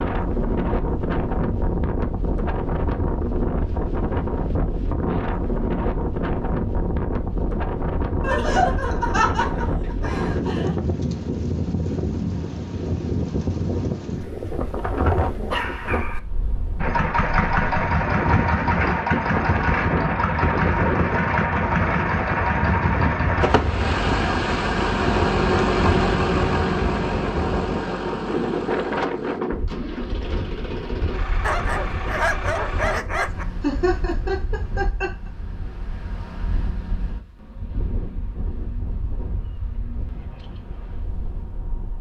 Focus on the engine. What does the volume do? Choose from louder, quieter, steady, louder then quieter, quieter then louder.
quieter.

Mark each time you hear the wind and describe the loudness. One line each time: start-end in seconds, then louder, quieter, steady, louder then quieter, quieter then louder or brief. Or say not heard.
0.0-41.9 quieter.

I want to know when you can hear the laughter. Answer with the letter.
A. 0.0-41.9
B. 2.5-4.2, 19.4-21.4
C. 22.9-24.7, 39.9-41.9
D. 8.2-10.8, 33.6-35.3
D.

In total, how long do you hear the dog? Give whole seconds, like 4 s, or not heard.
4 s.